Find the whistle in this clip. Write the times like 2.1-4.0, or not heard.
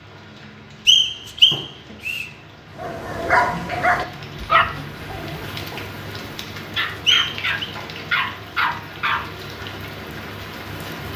0.8-2.2, 7.0-7.7.